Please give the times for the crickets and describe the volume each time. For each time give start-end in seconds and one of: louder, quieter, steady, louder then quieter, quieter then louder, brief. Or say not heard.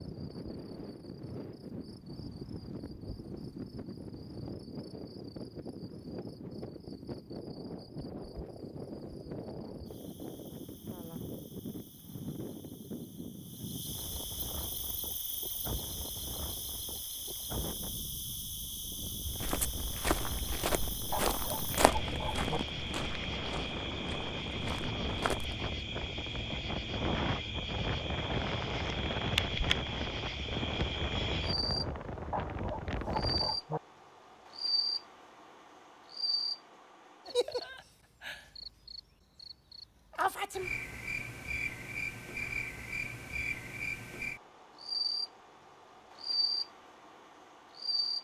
0.0-48.2 louder.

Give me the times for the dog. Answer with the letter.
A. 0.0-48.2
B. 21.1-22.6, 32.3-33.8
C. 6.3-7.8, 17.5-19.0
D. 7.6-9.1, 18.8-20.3
B.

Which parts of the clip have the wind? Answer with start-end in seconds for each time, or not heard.
0.0-33.6.